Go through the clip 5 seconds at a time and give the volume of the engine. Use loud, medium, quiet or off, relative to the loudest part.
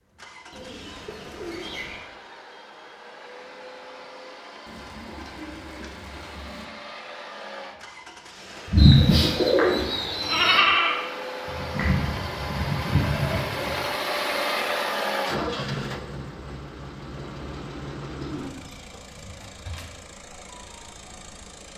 quiet, medium, loud, loud, quiet.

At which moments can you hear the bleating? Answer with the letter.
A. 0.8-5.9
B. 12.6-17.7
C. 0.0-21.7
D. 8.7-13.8
D.